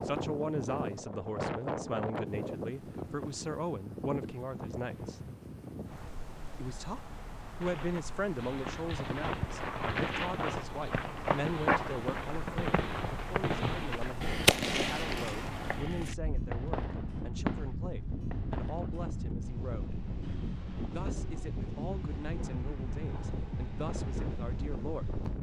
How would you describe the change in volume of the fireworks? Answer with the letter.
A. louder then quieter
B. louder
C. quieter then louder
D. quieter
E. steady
A.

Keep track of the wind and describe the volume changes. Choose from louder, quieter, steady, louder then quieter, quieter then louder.
quieter then louder.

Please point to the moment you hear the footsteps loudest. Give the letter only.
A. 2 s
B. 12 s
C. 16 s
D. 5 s
B.